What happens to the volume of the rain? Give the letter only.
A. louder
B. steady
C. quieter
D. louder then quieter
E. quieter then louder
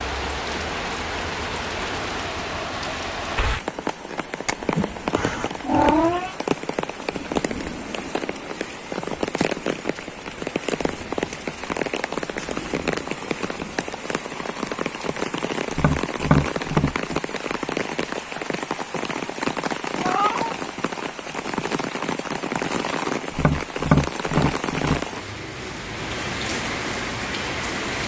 B.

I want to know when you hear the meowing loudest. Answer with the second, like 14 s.
6 s.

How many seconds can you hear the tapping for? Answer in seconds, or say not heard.
3 s.